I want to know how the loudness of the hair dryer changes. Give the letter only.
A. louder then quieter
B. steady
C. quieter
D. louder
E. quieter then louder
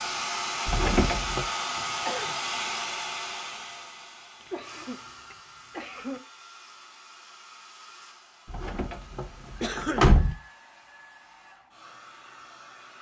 C.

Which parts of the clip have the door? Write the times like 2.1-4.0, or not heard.
0.7-1.4, 8.5-10.3.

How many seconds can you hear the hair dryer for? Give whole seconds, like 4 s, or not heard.
13 s.